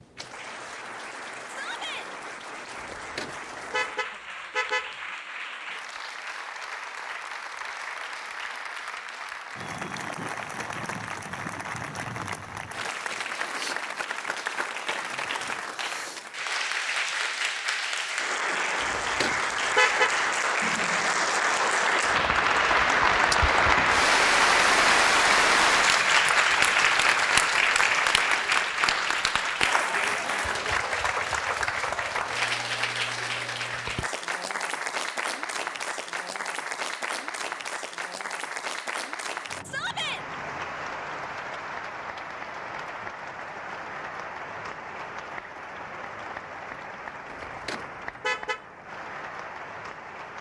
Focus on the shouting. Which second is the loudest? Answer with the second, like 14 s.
40 s.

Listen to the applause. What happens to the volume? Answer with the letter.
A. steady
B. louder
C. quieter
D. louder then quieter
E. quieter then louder
D.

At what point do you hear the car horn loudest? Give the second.
20 s.